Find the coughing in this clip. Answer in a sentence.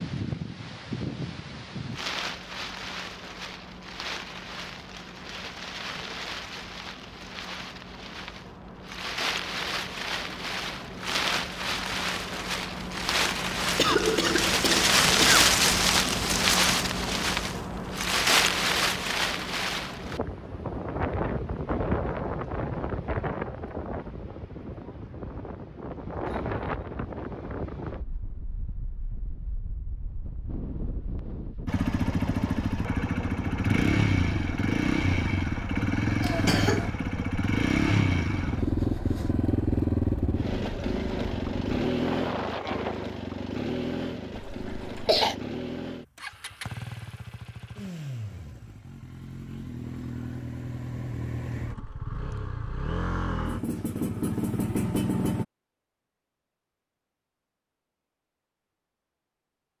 You can hear the coughing from 13.8 to 15.4 s, from 36.2 to 36.9 s and from 44.4 to 45.4 s.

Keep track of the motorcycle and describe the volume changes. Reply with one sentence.
The loudness of the motorcycle goes down, then up.